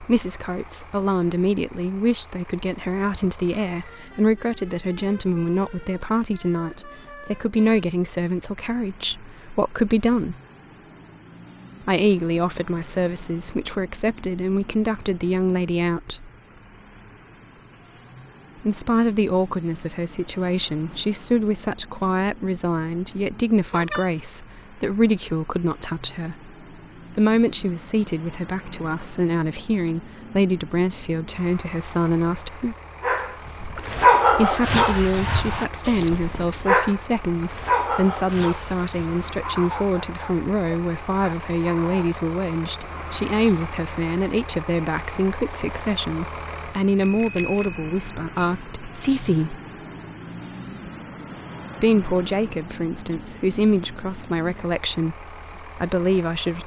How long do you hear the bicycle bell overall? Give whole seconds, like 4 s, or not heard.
3 s.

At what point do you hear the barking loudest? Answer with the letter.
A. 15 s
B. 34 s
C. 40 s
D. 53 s
B.